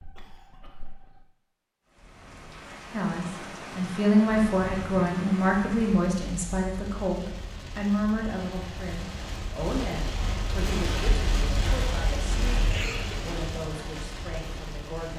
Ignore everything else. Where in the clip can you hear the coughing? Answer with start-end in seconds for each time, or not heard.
0.0-1.2, 12.6-13.2.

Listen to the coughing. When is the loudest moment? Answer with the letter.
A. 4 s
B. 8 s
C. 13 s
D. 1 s
C.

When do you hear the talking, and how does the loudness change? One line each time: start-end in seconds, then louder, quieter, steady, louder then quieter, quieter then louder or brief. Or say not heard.
2.9-15.1 quieter.